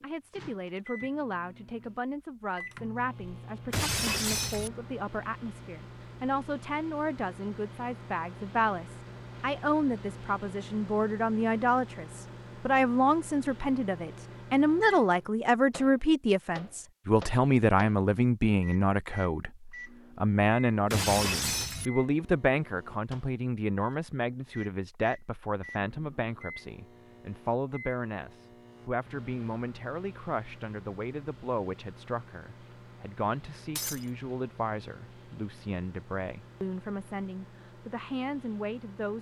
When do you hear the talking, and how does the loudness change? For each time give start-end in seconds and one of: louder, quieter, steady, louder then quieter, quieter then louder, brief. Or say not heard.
0.0-39.1 louder then quieter.